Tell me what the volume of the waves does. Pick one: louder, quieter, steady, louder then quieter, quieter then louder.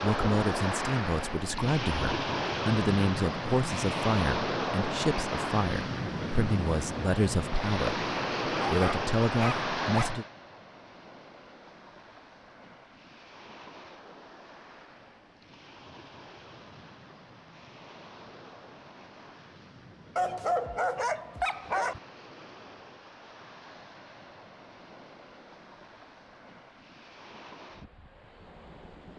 quieter.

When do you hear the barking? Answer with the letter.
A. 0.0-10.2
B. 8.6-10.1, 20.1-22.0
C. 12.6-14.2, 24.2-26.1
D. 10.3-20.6
B.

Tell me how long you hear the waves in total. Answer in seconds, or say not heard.
29 s.